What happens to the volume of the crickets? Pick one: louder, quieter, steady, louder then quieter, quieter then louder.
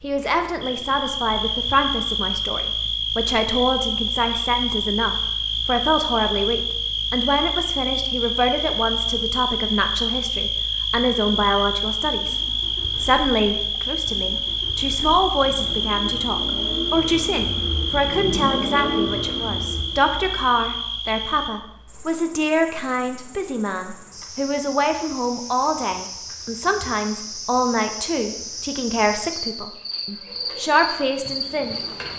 quieter.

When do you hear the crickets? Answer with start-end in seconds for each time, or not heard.
0.0-32.1.